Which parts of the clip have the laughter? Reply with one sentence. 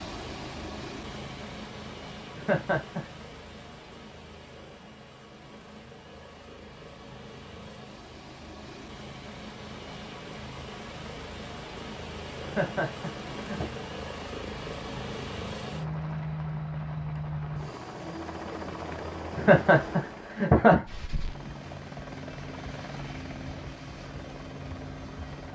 You can hear the laughter from 2.4 to 3.0 s, from 12.4 to 13.8 s and from 19.4 to 20.9 s.